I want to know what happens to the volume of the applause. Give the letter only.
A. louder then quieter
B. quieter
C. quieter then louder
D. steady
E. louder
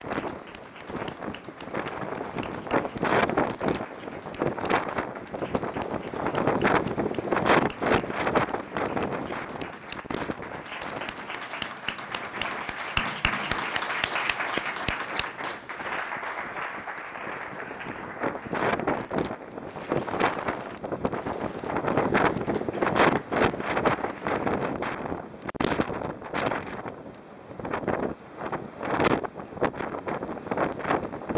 A.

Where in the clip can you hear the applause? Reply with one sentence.
You can hear the applause from 0.0 to 24.8 s.